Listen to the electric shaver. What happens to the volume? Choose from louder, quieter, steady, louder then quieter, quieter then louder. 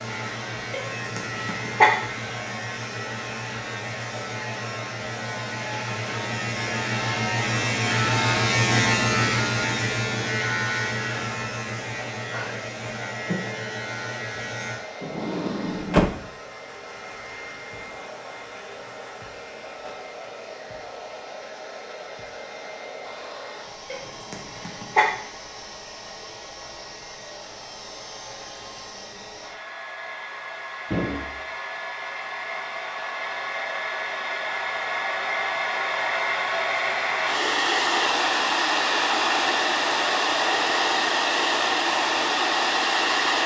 louder then quieter.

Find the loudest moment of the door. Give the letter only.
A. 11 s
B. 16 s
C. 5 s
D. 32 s
B.